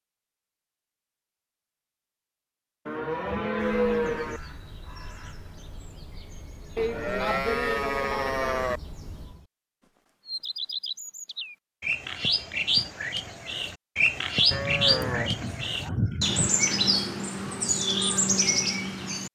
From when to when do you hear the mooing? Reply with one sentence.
You can hear the mooing from 2.9 to 4.4 s, from 6.8 to 8.8 s and from 14.5 to 16.5 s.